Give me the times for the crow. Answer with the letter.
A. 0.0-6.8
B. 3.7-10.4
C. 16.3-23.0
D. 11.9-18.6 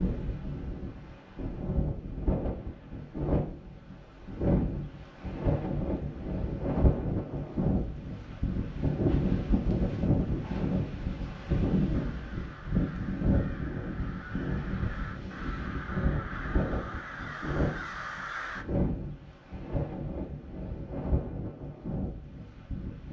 D.